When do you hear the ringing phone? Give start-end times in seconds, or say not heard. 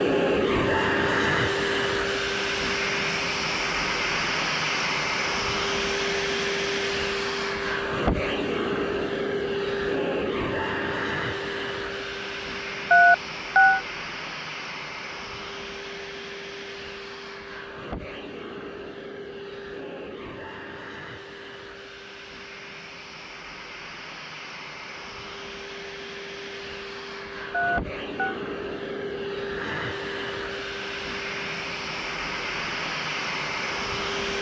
12.9-13.8, 27.5-28.4.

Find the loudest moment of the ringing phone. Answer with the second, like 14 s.
13 s.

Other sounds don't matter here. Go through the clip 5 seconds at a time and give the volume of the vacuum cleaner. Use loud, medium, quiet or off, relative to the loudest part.
loud, loud, medium, quiet, quiet, medium, medium.